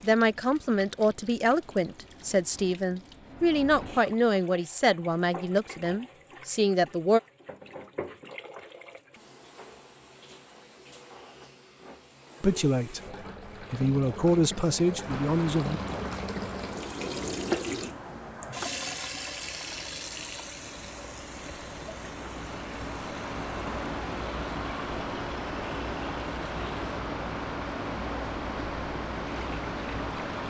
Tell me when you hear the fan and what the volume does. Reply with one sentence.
You can hear the fan from 15.0 to 30.4 s, getting quieter then louder.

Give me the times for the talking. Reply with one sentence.
The talking can be heard from 0.0 to 7.2 s and from 12.4 to 15.8 s.